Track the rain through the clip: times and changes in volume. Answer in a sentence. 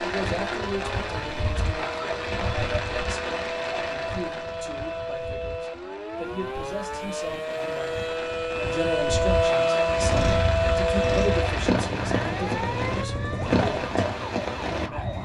You can hear the rain from 0.0 to 15.2 s, getting quieter then louder.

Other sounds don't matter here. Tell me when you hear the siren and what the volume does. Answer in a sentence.
You can hear the siren from 0.0 to 15.2 s, getting louder then quieter.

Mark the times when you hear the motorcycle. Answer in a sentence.
The motorcycle can be heard from 9.9 to 13.9 s.